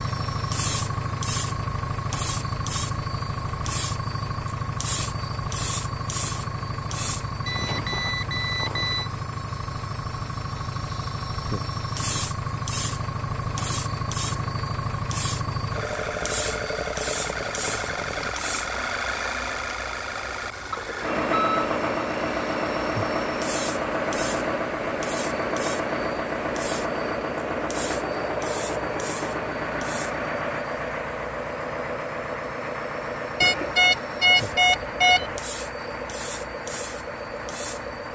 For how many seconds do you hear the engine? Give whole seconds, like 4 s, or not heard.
38 s.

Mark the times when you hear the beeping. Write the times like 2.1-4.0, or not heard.
7.5-9.1, 20.7-21.6, 33.4-35.4.